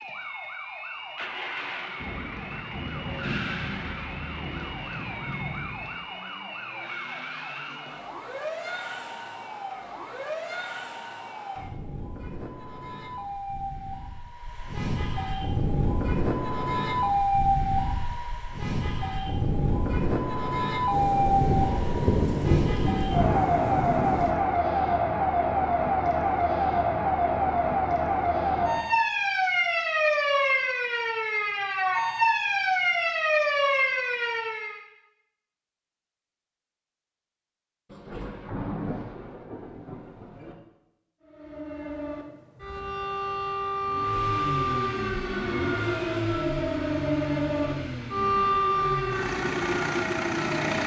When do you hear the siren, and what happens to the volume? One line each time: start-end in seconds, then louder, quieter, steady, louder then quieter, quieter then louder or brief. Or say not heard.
0.0-34.8 louder
41.2-50.8 louder.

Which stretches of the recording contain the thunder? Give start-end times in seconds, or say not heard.
2.0-5.9, 20.9-24.4, 37.9-40.5.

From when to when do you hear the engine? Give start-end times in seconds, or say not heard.
43.9-50.8.